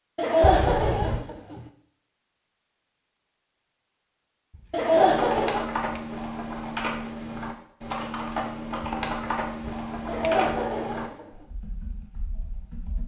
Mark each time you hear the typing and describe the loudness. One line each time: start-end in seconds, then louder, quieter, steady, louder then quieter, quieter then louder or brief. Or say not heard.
4.9-13.0 quieter.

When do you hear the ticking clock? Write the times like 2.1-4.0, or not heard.
not heard.